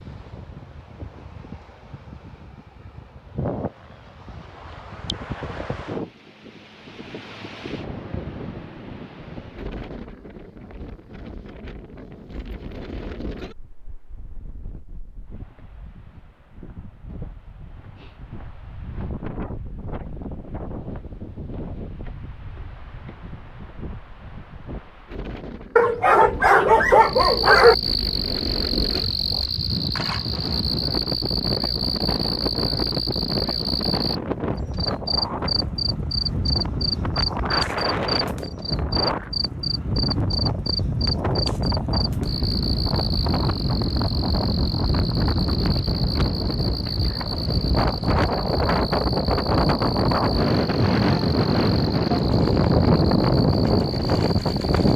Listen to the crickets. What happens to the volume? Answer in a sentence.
The loudness of the crickets goes down.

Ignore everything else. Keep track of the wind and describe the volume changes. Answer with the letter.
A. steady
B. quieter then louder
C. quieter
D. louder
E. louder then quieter
D.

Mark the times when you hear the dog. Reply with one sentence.
You can hear the dog from 25.8 to 27.8 s.